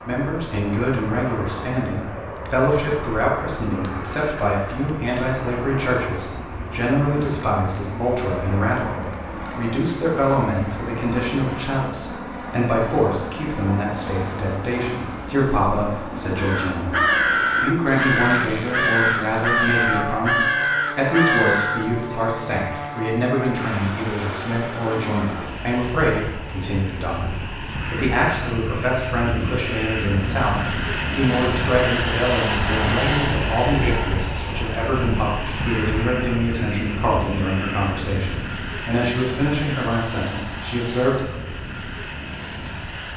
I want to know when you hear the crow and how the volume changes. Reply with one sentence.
You can hear the crow from 16.4 to 21.9 s, at a steady volume.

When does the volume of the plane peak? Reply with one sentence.
The loudest moment of the plane is at 33 seconds.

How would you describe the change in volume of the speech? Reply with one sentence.
The loudness of the speech stays about the same.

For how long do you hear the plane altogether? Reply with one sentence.
You can hear the plane for 43 seconds altogether.